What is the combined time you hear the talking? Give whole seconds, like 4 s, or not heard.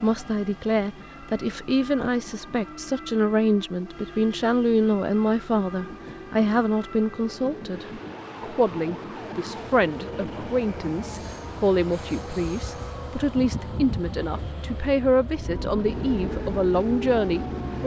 18 s.